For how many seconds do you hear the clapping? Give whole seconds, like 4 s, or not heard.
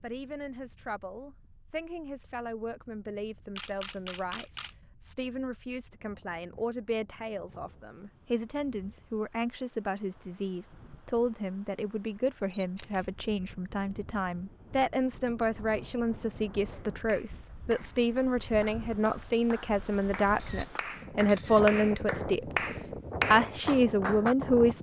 8 s.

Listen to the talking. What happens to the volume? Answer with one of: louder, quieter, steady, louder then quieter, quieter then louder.
louder.